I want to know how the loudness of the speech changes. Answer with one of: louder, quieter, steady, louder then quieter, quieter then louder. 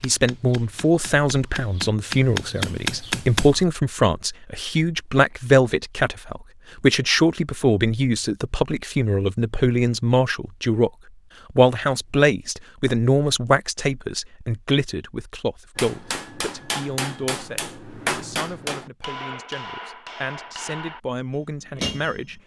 quieter.